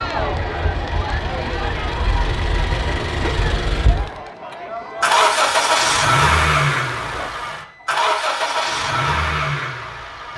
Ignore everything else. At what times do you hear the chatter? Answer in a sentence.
The chatter can be heard from 0.0 to 7.3 s.